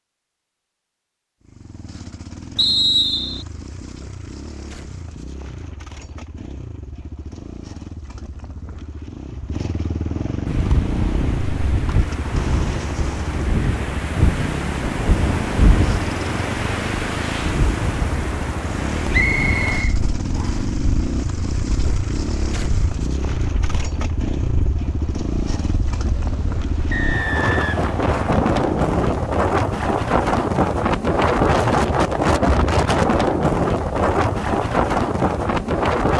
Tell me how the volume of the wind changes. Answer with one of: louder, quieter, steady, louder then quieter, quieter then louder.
quieter then louder.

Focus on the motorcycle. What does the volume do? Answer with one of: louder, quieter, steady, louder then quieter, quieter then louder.
louder.